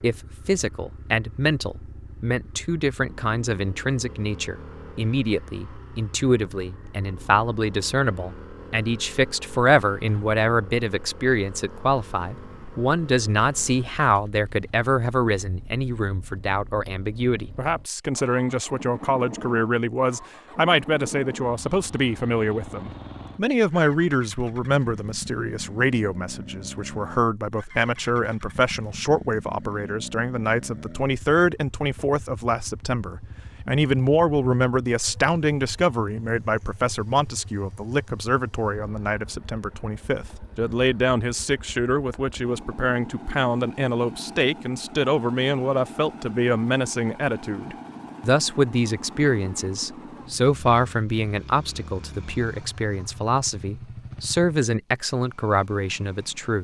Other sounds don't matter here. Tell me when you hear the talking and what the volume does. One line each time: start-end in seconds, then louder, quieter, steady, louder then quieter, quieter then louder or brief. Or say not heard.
0.0-56.5 steady.